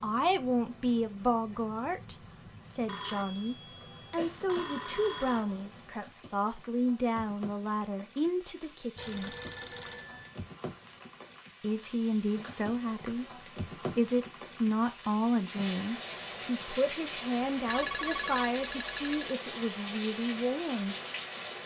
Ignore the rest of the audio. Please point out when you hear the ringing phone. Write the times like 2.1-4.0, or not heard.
2.9-5.5, 8.9-10.4, 17.6-19.2.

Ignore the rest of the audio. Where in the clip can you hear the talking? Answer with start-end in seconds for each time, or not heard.
0.0-9.3, 11.6-20.9.